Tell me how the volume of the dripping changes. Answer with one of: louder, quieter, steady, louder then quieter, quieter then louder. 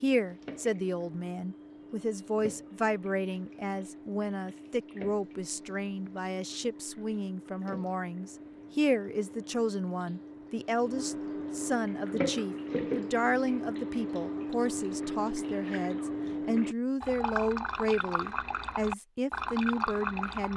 louder.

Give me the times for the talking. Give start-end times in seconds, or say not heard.
0.0-20.5.